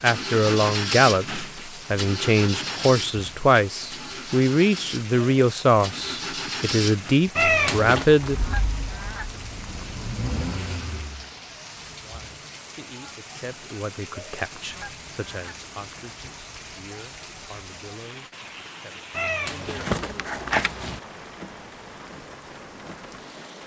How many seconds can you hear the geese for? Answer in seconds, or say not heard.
4 s.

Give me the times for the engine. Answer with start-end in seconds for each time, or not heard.
0.0-11.3.